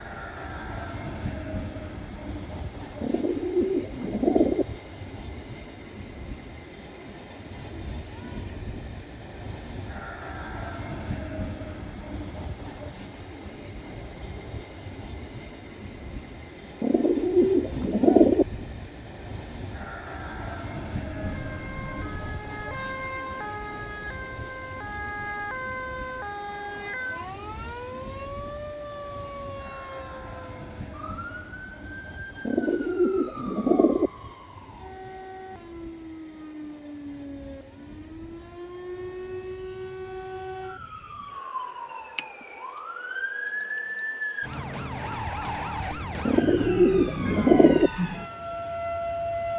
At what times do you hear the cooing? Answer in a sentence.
You can hear the cooing from 3.0 to 4.7 s, from 16.8 to 18.4 s, from 32.5 to 34.1 s and from 46.2 to 47.9 s.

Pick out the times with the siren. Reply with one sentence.
The siren can be heard from 21.1 to 49.5 s.